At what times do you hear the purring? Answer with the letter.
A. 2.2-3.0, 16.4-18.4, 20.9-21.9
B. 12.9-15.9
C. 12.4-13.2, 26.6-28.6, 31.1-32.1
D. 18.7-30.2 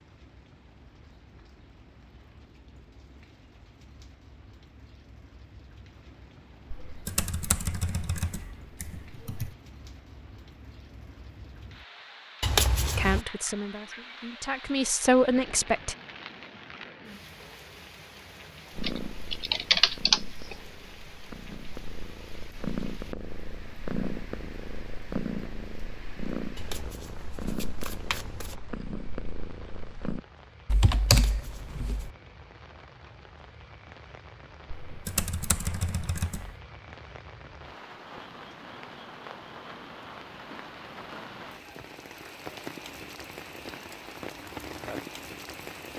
D.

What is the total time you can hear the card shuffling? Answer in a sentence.
You can hear the card shuffling for 4 seconds altogether.